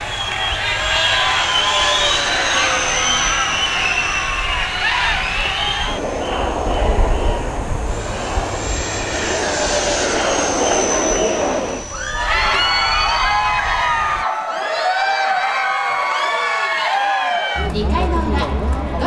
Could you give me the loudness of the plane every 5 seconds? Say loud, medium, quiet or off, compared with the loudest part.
loud, loud, loud, off.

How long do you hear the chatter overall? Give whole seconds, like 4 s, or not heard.
19 s.